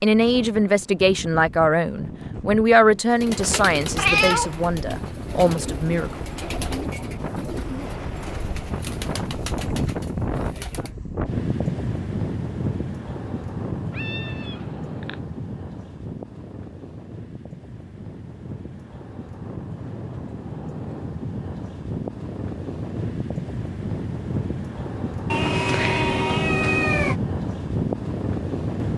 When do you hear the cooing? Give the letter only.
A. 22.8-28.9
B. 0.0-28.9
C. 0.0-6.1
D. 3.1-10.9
D.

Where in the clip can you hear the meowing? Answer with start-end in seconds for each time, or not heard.
3.8-5.0, 13.9-15.2, 25.3-27.1.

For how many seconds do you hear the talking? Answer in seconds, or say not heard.
6 s.